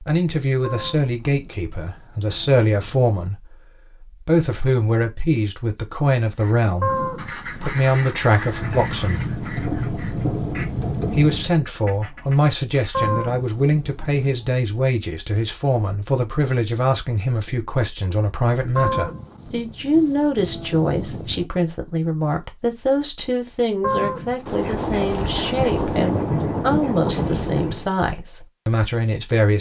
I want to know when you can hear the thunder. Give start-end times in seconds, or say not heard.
8.6-11.5, 24.4-27.9.